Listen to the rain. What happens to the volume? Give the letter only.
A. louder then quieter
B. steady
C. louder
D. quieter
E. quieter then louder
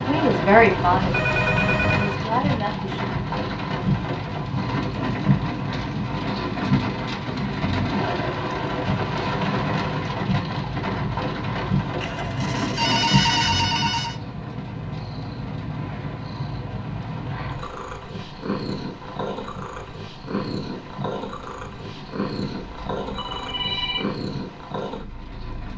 D.